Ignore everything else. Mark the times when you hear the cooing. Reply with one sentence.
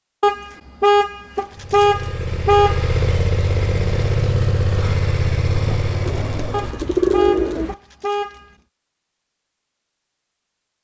You can hear the cooing from 6.0 to 7.8 s.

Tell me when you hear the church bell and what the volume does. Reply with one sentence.
You can't hear the church bell here.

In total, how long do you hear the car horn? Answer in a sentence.
The car horn can be heard for 5 seconds in total.